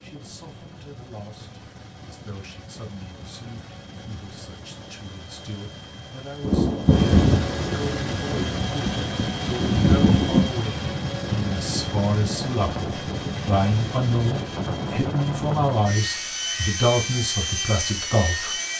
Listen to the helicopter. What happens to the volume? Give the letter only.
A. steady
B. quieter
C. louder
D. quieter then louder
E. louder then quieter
C.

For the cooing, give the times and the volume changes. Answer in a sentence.
The cooing can't be heard in this clip.